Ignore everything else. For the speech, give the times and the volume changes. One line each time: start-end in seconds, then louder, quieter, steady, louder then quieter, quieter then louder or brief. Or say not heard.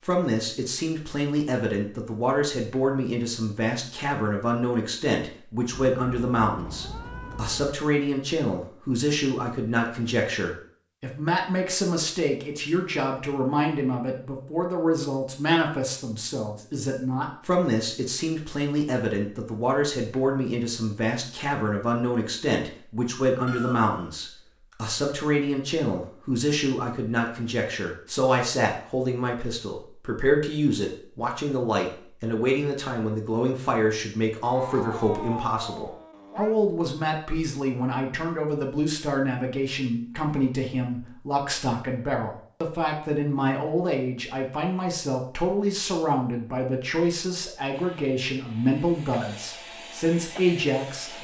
0.1-51.1 steady.